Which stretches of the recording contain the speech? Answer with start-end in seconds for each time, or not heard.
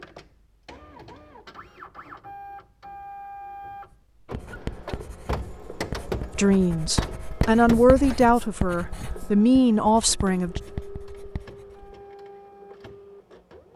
6.3-10.6.